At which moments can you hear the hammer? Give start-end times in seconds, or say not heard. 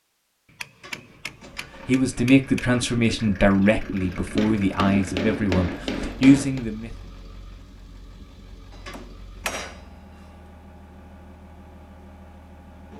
0.6-2.6, 4.3-6.7, 8.7-9.8.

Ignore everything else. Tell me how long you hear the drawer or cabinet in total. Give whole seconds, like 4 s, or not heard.
2 s.